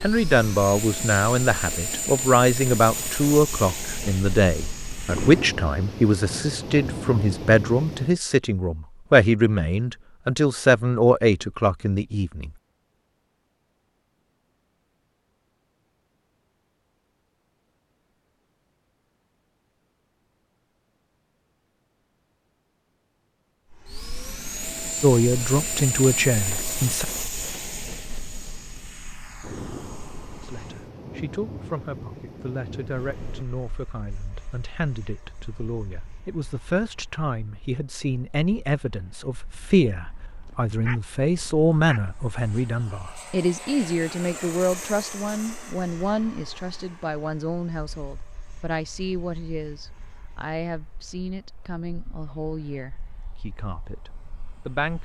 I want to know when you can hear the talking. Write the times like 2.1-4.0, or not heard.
0.0-12.5, 25.0-27.1, 30.4-54.9.